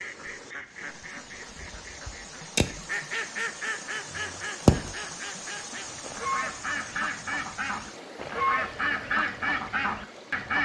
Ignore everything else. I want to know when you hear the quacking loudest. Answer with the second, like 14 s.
5 s.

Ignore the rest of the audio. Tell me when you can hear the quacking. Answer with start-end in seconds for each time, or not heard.
0.0-10.5.